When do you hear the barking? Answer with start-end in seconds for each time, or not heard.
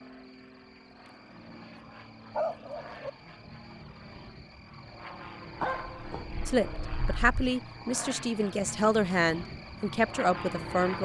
2.3-3.1, 5.6-7.5.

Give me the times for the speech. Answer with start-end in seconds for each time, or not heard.
6.5-11.0.